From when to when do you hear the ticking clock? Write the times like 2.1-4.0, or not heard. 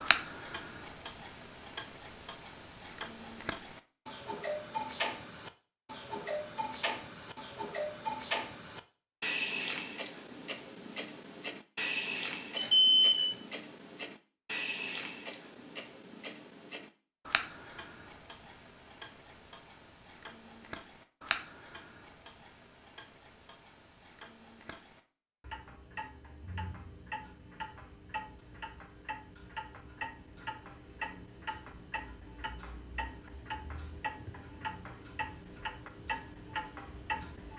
0.0-37.5.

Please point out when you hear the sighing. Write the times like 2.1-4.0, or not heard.
not heard.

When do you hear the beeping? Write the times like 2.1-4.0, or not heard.
12.6-13.4.